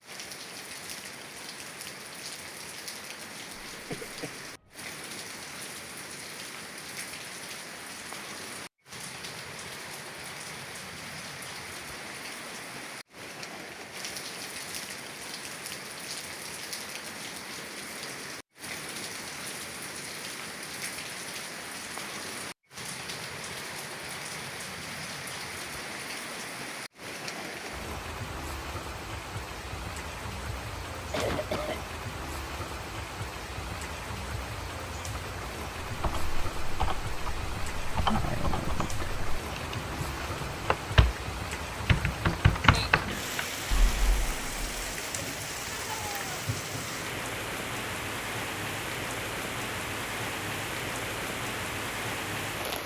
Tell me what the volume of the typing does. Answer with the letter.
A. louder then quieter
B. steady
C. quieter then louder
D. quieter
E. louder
E.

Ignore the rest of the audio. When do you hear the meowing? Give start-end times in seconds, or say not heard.
not heard.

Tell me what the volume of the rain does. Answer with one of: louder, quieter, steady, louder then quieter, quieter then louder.
louder.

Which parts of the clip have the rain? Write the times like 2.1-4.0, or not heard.
0.0-52.8.